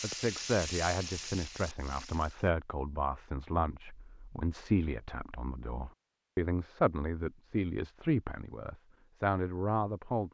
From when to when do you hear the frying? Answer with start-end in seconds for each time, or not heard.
0.0-2.5.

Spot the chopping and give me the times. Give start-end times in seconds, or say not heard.
not heard.